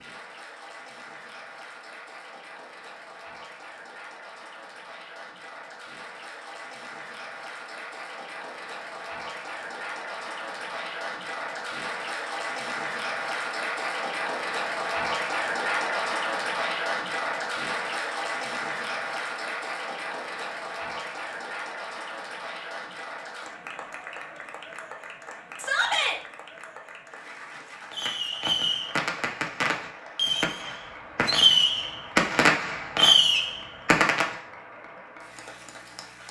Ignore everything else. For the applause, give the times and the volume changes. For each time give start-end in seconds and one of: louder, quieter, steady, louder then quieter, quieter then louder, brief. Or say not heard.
0.0-36.2 louder then quieter.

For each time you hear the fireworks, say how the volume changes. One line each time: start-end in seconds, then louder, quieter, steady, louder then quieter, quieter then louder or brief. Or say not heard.
27.9-34.4 louder.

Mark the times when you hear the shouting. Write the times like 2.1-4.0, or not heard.
25.6-26.1.